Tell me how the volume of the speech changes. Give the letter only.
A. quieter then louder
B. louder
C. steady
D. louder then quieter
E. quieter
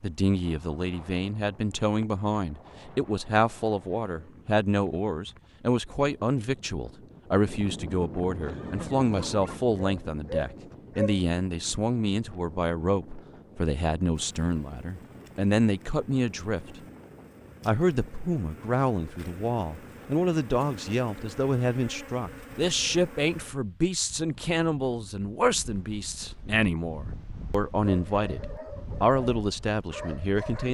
C.